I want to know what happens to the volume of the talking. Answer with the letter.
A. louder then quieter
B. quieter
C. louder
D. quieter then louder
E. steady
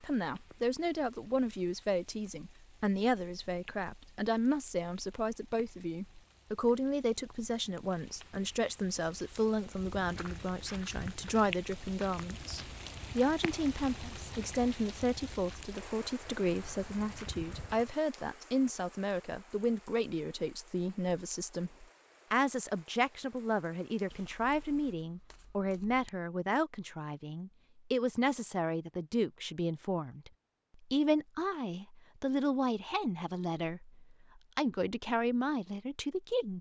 E.